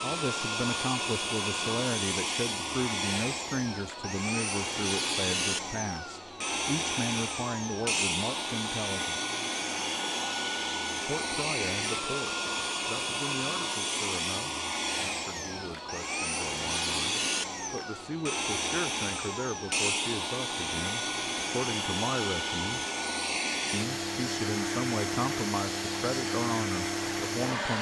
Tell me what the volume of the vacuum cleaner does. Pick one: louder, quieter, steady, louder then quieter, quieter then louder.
steady.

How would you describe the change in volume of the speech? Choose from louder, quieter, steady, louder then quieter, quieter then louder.
quieter then louder.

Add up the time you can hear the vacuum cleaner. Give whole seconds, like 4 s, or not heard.
28 s.